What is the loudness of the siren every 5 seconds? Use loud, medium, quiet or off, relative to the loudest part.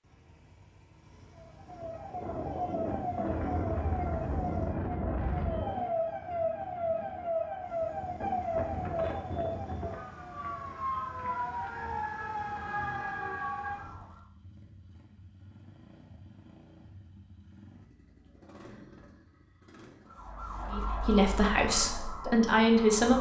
loud, loud, loud, off, medium.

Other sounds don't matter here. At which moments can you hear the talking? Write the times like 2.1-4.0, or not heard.
20.7-23.1.